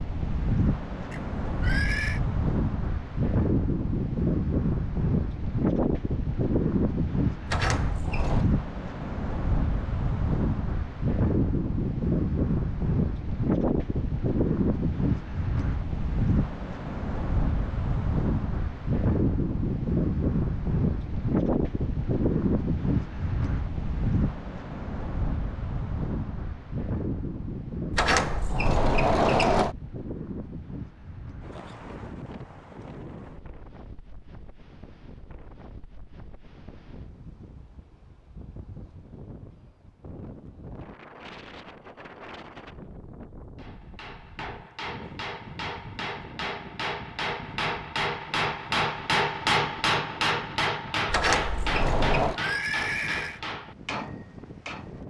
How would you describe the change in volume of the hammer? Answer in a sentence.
The volume of the hammer goes up, then down.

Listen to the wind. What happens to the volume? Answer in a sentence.
The loudness of the wind goes down.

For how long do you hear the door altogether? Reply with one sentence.
The door can be heard for 4 seconds in total.